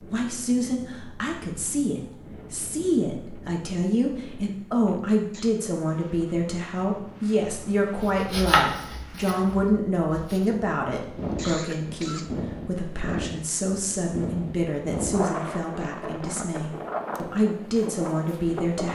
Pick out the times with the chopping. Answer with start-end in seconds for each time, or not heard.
8.0-10.4.